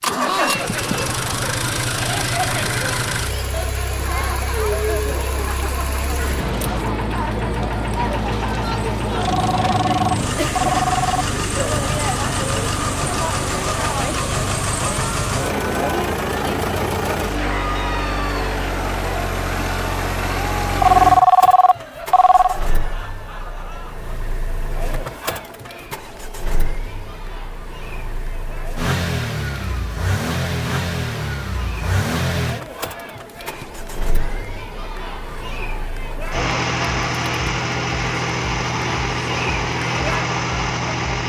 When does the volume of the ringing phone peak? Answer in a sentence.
The loudest moment of the ringing phone is at 21 seconds.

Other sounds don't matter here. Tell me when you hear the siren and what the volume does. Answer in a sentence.
You can't hear the siren here.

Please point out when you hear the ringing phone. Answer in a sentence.
You can hear the ringing phone from 9.2 to 11.2 s and from 20.8 to 22.6 s.